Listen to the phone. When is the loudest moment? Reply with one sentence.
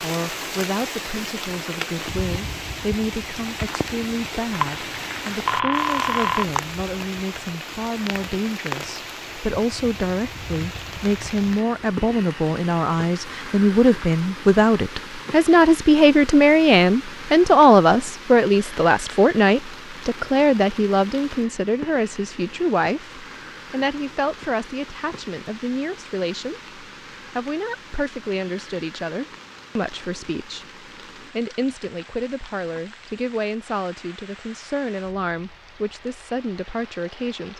The loudest moment of the phone is at 6 seconds.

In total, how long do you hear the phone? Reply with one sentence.
You can hear the phone for 2 seconds altogether.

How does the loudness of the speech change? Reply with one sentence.
The volume of the speech goes up, then down.